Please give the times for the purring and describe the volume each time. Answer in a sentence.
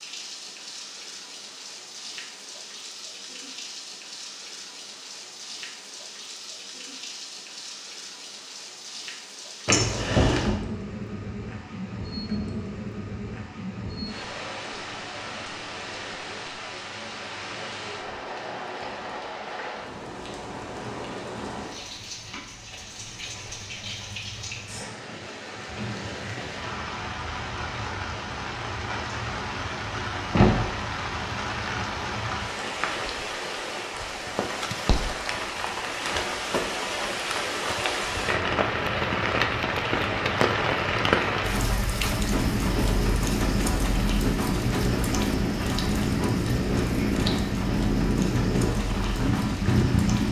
You can hear the purring from 42.0 to 50.2 s, at a steady volume.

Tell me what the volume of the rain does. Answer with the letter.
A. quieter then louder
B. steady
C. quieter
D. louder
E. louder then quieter
D.